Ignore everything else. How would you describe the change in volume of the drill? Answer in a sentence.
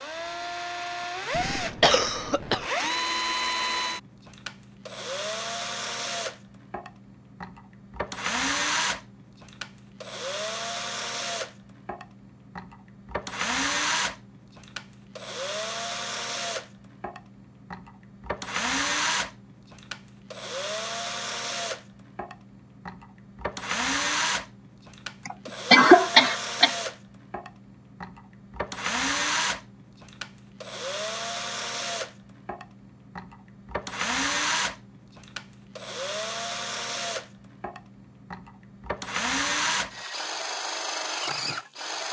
The volume of the drill stays about the same.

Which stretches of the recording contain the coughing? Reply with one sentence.
You can hear the coughing from 1.3 to 2.6 s and from 25.2 to 26.7 s.